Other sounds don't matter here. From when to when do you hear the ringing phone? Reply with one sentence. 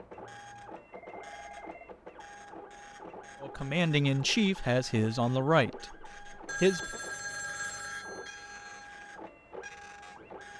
You can hear the ringing phone from 0.9 to 1.9 s and from 6.5 to 8.8 s.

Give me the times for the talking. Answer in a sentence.
The talking can be heard from 3.4 to 7.0 s.